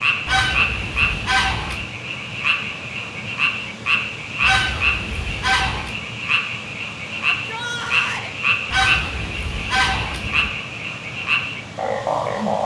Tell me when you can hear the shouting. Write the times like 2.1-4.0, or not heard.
7.3-8.3.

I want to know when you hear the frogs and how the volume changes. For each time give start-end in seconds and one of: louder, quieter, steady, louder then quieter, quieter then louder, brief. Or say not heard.
0.0-12.6 steady.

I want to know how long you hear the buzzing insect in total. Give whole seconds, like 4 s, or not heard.
not heard.